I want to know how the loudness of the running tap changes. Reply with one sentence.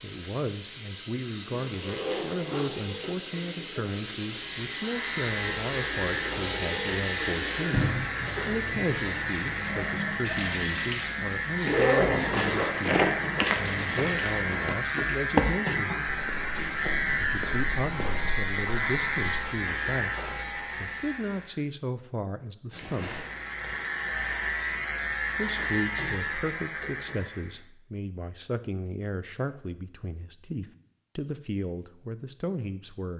The loudness of the running tap goes up, then down.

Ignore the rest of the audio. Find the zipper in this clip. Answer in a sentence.
The zipper can be heard from 1.6 to 2.9 s, from 11.6 to 12.8 s and from 22.7 to 24.0 s.